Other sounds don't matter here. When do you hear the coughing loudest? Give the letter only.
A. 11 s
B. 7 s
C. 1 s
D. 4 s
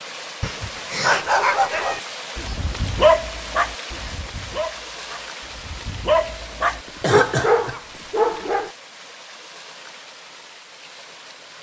B.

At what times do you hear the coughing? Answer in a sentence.
You can hear the coughing from 0.4 to 1.2 s and from 7.0 to 7.8 s.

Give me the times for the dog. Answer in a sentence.
You can hear the dog from 1.0 to 8.7 s.